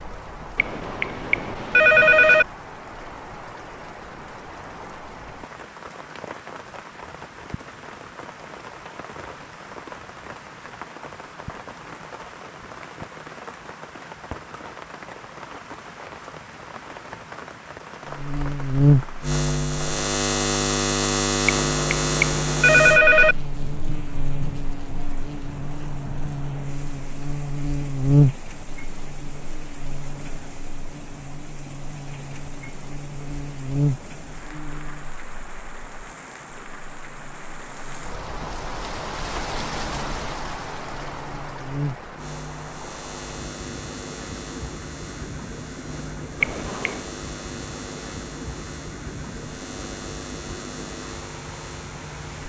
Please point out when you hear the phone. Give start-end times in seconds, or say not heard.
0.6-2.5, 21.4-23.4, 46.4-47.0.